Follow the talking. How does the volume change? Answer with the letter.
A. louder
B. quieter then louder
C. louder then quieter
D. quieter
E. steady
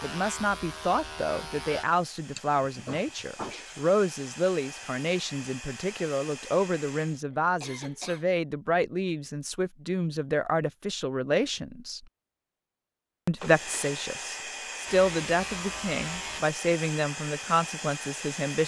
E.